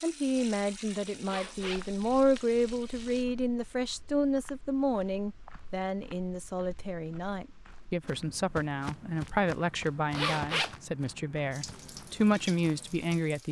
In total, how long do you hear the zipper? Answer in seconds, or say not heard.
3 s.